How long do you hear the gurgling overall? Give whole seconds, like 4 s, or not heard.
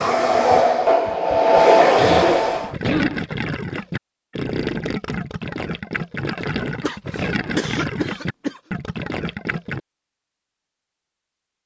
7 s.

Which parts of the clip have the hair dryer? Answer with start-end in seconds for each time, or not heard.
0.0-2.7.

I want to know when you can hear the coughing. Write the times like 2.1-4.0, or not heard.
1.9-3.2, 6.8-8.6.